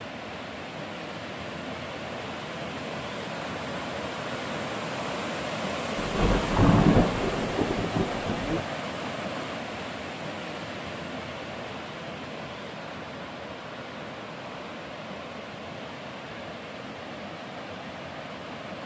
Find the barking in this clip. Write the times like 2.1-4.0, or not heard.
not heard.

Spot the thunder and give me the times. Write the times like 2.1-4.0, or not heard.
6.0-8.6.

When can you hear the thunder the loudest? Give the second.
7 s.